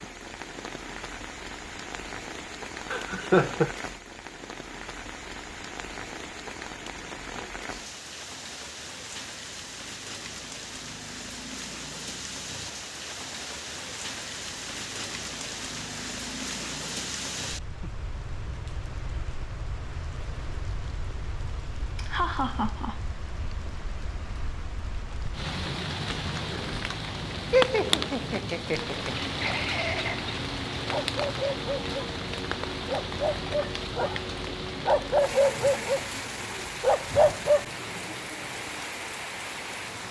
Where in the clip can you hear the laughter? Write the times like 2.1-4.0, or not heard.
2.9-3.7, 21.9-23.0, 27.5-30.2.